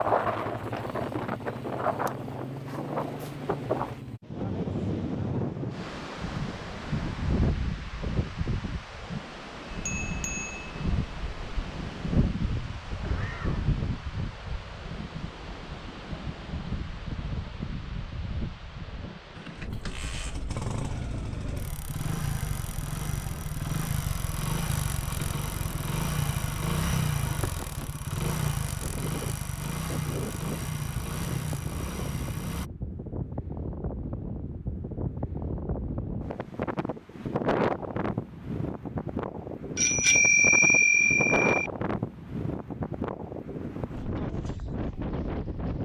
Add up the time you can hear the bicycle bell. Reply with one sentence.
You can hear the bicycle bell for 4 seconds altogether.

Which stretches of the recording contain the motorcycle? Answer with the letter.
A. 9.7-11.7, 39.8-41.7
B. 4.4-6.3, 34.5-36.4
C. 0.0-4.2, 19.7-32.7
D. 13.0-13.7
C.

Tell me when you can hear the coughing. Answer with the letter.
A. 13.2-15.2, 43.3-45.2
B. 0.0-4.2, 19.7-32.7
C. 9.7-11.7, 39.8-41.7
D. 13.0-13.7
D.